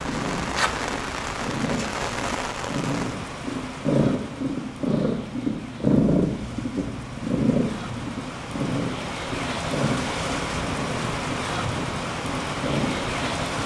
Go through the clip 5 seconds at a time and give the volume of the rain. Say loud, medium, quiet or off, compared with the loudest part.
loud, medium, loud.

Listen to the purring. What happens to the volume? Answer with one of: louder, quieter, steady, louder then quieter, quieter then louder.
louder then quieter.